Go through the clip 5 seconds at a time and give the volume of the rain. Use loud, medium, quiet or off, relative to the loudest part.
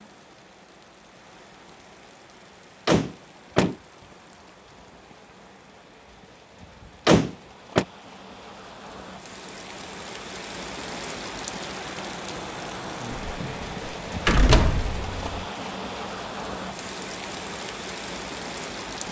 quiet, medium, loud, loud.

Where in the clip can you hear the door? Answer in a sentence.
The door can be heard from 2.9 to 3.8 s, from 7.0 to 7.8 s and from 13.2 to 15.4 s.